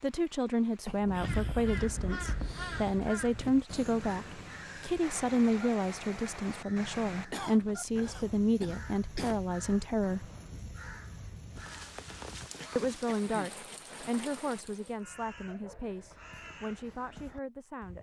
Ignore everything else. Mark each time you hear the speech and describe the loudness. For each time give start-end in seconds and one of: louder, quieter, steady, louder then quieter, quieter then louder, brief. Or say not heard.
0.0-10.2 steady
12.8-17.9 quieter.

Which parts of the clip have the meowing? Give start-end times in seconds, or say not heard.
not heard.